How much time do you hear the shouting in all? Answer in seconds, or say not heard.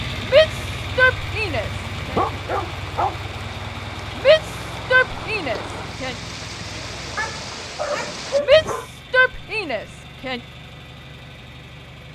6 s.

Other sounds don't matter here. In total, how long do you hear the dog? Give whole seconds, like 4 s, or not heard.
3 s.